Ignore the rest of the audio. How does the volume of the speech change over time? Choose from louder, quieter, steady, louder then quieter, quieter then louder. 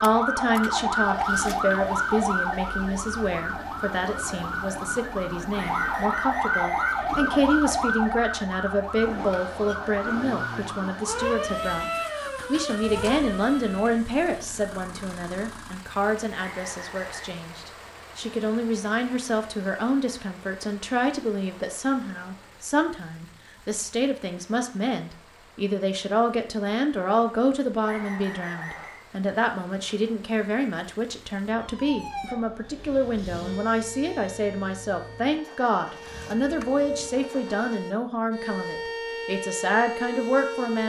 steady.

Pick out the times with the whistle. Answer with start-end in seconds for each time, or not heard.
5.5-7.1, 16.4-17.3, 27.8-29.0.